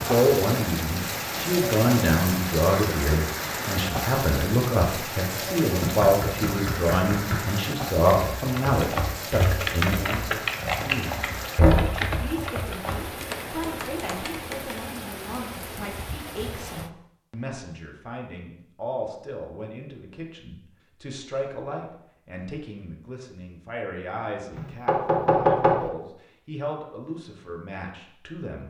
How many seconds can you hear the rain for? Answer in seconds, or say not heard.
17 s.